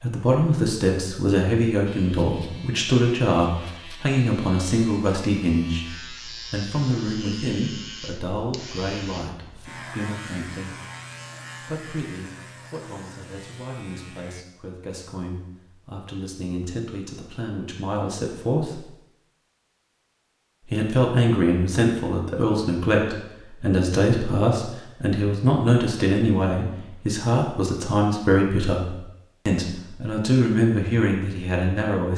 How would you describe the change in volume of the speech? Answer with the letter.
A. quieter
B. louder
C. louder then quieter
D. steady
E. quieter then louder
E.